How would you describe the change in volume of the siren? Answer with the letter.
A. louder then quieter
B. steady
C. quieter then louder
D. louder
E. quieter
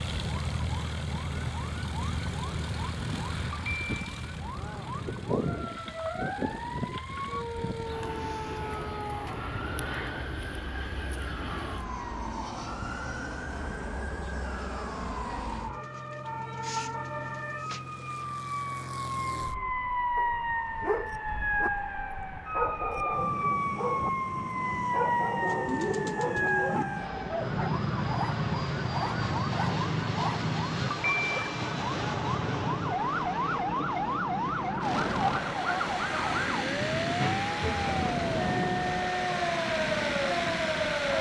D.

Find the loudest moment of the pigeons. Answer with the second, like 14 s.
26 s.